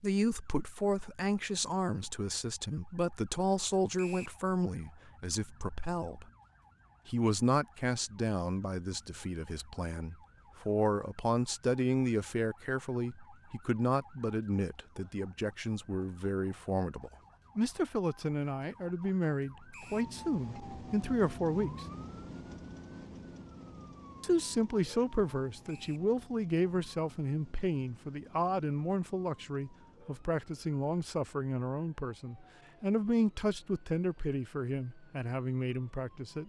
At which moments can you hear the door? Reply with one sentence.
You can't hear the door here.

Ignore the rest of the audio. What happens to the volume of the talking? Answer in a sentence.
The loudness of the talking stays about the same.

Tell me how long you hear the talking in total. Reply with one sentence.
The talking can be heard for 33 seconds in total.